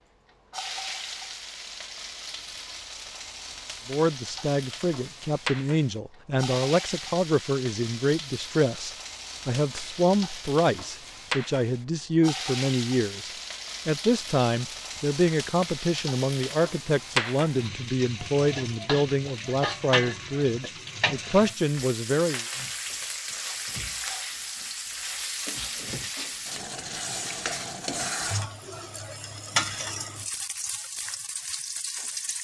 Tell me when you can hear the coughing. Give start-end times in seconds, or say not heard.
not heard.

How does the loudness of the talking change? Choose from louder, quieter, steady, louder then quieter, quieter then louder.
steady.